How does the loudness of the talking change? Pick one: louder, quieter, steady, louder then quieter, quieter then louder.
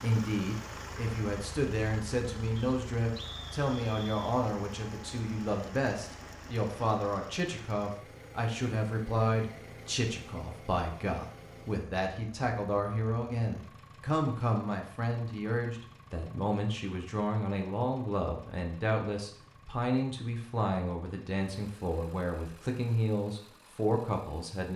steady.